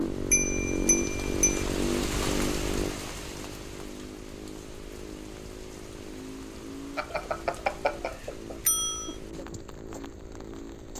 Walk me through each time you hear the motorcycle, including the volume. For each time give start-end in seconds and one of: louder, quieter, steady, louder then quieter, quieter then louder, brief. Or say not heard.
0.0-10.9 quieter.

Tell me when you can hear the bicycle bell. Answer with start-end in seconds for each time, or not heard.
0.3-1.6, 7.0-9.2.